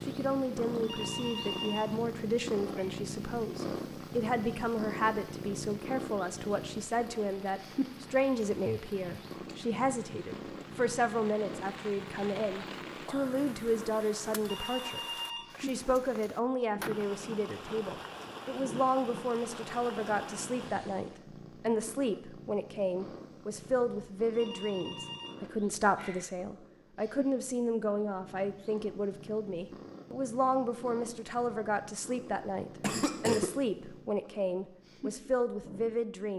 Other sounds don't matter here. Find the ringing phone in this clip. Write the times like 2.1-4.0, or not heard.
0.8-2.0, 14.4-15.7, 24.3-26.2.